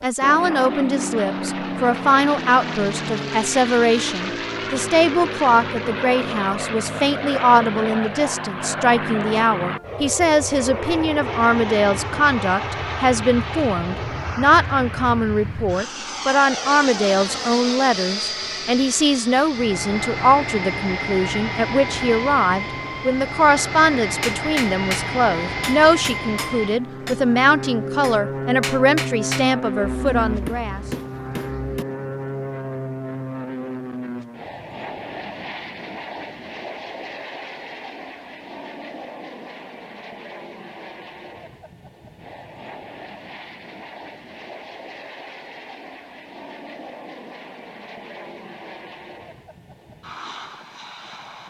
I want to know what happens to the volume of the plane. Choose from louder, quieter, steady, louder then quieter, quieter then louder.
quieter.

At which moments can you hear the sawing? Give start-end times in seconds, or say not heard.
not heard.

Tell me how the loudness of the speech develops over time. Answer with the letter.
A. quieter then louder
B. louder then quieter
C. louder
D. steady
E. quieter
D.